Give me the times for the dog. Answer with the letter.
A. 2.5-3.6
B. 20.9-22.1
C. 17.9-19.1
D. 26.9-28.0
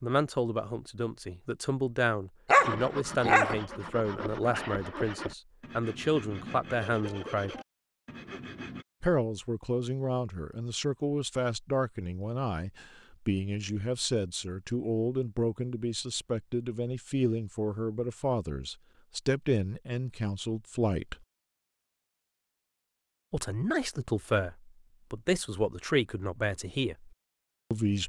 A.